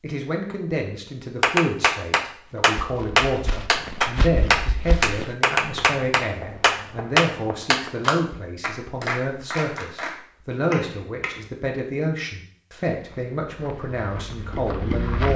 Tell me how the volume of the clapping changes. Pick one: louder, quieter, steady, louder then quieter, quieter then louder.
quieter.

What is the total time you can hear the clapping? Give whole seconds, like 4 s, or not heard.
10 s.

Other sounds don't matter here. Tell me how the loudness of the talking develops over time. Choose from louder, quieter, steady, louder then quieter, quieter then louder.
steady.